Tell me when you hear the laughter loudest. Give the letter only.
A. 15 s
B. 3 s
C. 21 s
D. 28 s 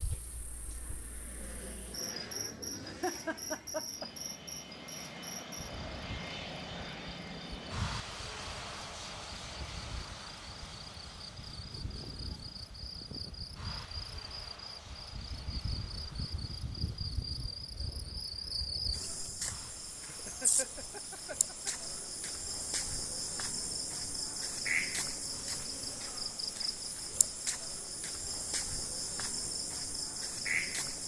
B.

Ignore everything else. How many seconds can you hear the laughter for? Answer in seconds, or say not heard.
3 s.